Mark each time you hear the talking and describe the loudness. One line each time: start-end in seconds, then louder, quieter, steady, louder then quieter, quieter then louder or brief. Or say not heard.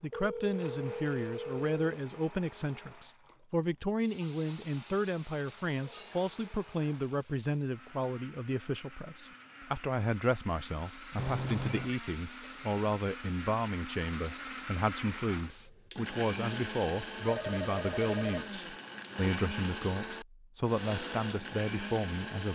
0.0-22.4 steady.